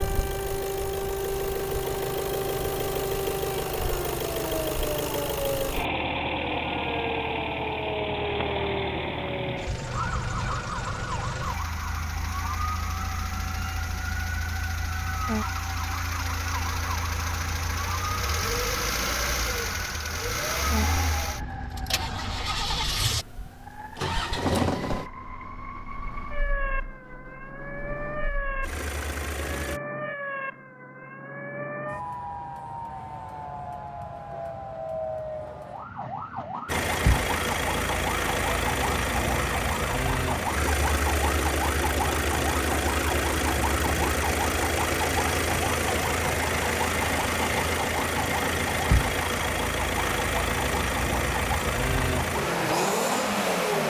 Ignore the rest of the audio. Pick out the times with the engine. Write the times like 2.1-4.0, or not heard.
0.0-29.8, 36.6-53.8.